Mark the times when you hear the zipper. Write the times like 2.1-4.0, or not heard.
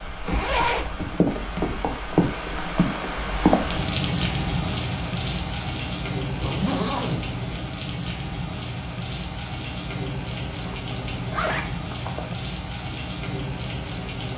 0.2-0.9, 6.4-7.4, 10.7-12.3.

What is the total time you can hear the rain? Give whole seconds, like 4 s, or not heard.
14 s.